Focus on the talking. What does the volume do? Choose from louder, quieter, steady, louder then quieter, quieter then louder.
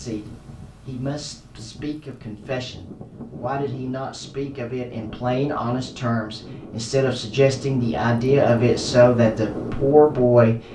louder.